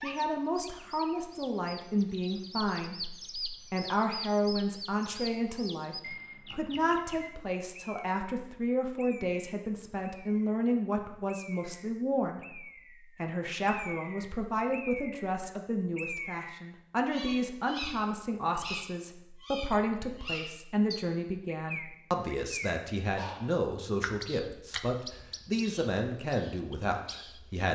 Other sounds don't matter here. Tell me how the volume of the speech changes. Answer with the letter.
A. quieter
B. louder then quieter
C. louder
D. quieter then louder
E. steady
E.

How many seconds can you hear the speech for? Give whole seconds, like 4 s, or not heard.
28 s.